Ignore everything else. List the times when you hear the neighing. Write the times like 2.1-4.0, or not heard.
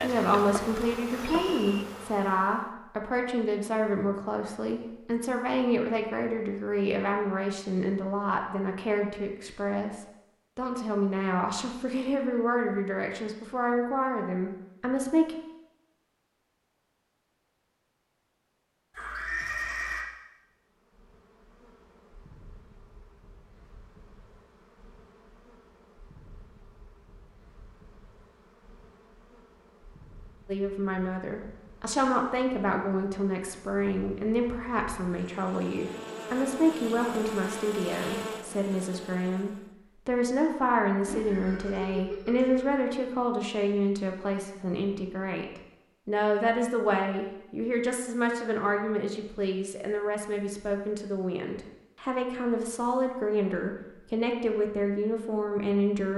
18.9-20.1, 41.0-42.8.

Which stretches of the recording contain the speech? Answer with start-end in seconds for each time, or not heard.
0.0-15.3, 30.4-56.1.